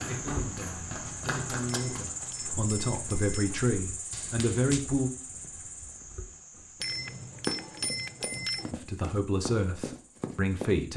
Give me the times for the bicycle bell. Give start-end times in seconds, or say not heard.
1.6-3.5, 6.8-8.8.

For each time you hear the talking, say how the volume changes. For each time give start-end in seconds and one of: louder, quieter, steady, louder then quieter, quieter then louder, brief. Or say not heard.
0.0-5.1 louder
8.7-10.9 brief.